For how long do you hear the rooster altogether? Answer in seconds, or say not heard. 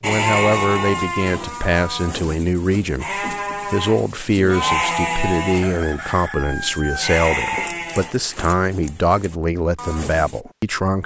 2 s.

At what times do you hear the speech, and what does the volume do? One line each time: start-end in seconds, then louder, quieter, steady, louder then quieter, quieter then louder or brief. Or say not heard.
0.0-11.0 steady.